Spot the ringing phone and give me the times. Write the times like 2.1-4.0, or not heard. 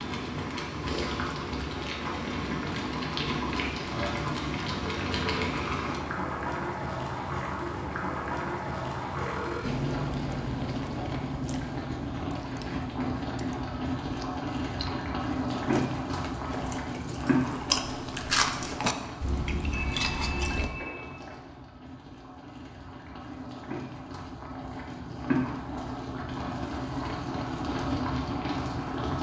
9.2-9.8, 19.7-21.3.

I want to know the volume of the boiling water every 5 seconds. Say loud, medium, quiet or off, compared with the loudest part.
loud, loud, loud, loud, medium, loud.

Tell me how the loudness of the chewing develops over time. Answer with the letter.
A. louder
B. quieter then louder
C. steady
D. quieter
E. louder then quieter
B.